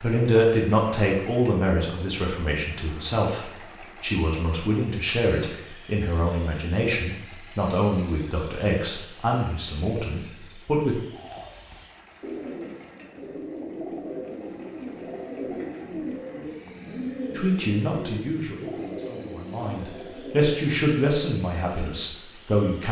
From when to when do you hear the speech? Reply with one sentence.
The speech can be heard from 0.0 to 11.0 s and from 17.4 to 22.8 s.